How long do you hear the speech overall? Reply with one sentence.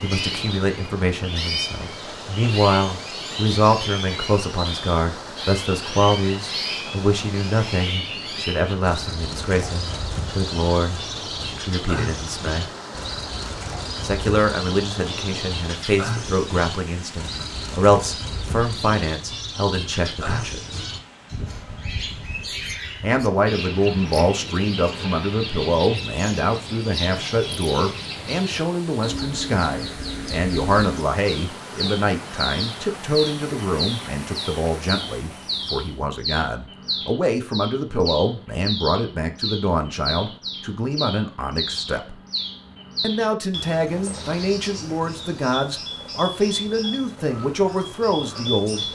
The speech can be heard for 44 seconds in total.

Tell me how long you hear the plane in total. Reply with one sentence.
The plane can't be heard in this clip.